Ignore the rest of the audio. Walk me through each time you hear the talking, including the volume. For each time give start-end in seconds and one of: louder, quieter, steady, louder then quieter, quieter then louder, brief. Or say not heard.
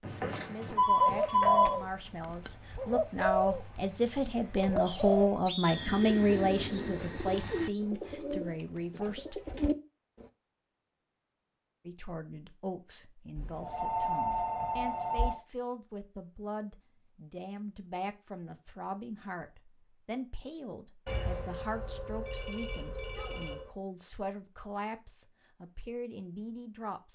0.0-9.4 louder then quieter
11.8-27.0 steady.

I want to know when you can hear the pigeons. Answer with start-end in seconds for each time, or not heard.
0.7-10.2.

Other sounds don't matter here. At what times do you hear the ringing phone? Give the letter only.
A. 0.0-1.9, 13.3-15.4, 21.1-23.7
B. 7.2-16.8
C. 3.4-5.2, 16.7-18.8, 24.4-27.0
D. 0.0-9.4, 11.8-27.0
A.